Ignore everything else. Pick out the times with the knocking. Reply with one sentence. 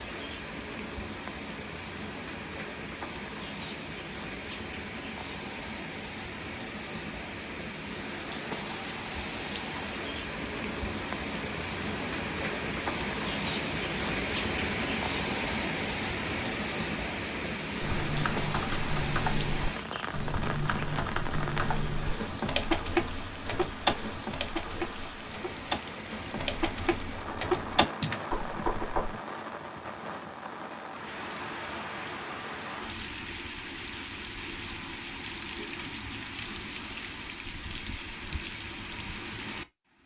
You can hear the knocking from 28.3 to 29.1 s.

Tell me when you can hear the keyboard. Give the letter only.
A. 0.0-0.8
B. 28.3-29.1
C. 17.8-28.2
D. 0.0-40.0
C.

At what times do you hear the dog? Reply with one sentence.
You can't hear the dog here.